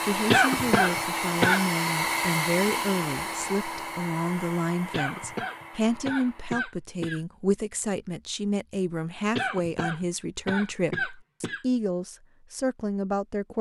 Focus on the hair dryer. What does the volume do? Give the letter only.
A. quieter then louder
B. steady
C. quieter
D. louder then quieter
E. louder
C.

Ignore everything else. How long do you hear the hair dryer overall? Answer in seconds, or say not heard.
7 s.